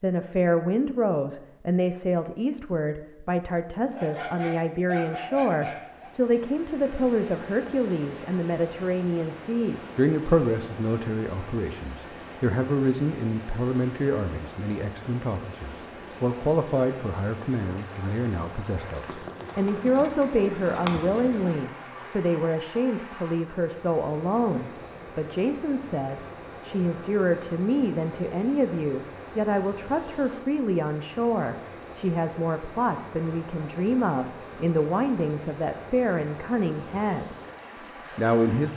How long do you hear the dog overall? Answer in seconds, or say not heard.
2 s.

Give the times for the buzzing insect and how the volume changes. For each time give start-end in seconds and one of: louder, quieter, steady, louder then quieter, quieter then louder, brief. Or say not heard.
not heard.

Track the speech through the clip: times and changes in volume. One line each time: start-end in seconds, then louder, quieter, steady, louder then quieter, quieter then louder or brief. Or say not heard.
0.0-37.4 steady
38.1-38.7 brief.